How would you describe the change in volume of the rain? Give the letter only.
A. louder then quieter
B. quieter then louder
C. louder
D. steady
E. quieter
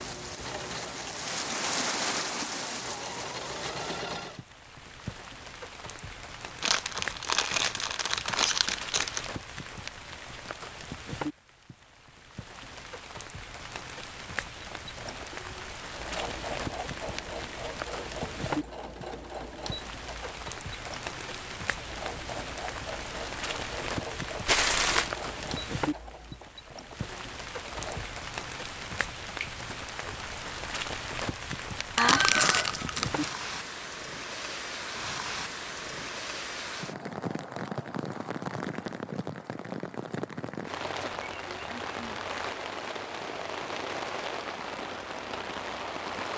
D.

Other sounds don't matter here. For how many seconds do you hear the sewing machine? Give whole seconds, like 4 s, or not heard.
18 s.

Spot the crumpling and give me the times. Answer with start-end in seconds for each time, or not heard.
6.6-9.3, 24.4-25.1, 31.9-33.3.